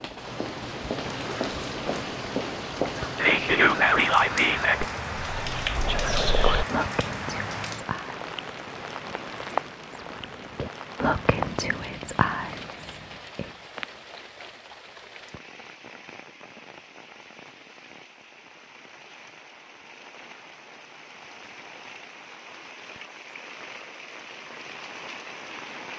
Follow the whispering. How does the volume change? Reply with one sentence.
The volume of the whispering goes down.